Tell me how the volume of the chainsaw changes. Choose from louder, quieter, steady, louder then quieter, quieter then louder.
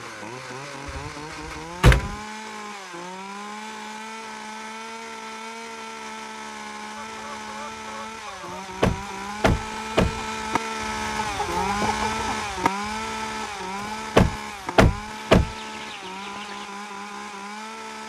louder then quieter.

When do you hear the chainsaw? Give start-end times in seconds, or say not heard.
0.0-18.0.